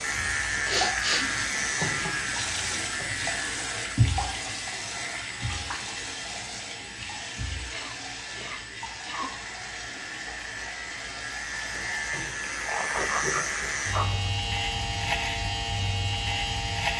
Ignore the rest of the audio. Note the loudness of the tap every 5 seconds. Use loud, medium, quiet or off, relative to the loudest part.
loud, medium, medium, medium.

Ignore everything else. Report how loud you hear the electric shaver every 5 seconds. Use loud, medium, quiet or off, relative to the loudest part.
loud, quiet, loud, loud.